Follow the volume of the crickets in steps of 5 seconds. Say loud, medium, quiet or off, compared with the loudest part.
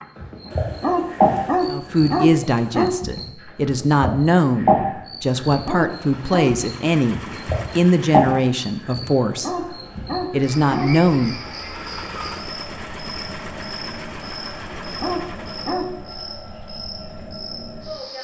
loud, loud, medium, medium.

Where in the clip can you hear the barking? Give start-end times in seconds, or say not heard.
0.5-3.0, 5.5-6.6, 9.1-11.1, 14.8-16.3.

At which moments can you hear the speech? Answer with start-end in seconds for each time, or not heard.
1.6-11.3.